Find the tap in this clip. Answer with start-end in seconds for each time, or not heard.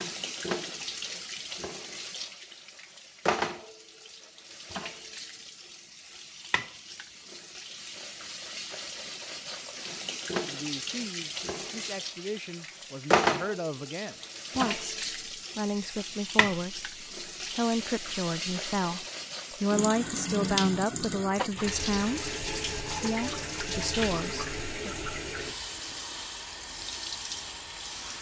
0.0-28.1.